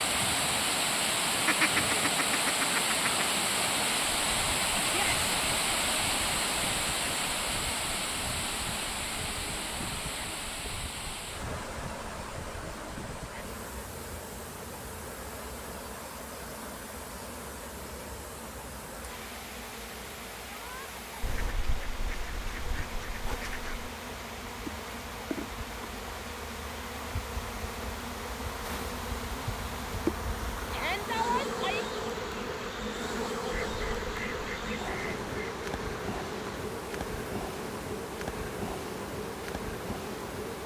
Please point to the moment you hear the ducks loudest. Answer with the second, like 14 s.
2 s.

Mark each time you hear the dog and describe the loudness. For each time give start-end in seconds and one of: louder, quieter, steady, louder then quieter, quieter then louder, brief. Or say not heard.
not heard.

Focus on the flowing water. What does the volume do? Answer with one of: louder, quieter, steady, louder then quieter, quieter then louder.
quieter.